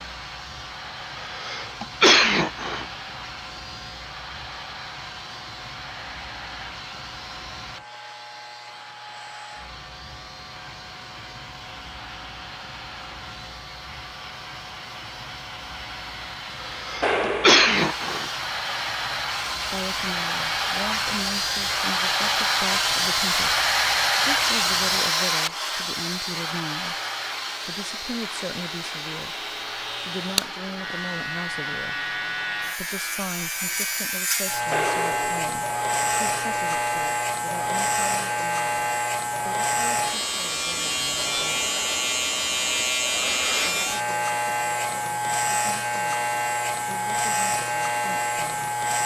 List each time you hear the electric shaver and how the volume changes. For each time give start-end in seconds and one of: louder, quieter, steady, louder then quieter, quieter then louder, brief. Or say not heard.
0.0-49.0 louder.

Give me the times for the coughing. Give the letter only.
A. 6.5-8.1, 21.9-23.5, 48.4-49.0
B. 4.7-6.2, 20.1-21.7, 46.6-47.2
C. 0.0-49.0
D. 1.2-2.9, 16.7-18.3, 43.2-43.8
D.